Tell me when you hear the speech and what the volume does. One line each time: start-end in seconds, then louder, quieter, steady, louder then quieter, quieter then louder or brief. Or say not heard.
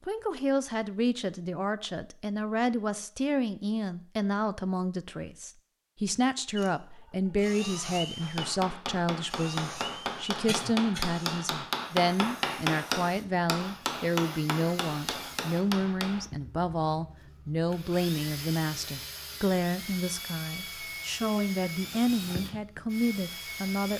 0.1-23.9 steady.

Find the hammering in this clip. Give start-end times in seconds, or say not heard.
8.2-16.2.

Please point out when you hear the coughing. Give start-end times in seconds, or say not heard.
10.4-11.1.